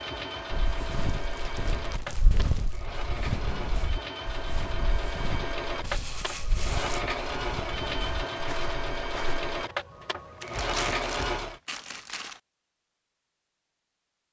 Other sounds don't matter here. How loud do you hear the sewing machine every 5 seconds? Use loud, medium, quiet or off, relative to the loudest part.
medium, loud, loud.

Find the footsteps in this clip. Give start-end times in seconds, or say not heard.
0.5-9.4.